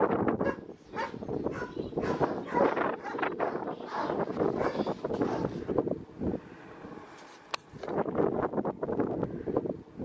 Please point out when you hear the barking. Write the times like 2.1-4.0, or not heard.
0.4-5.8.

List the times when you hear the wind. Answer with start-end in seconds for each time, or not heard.
0.0-10.0.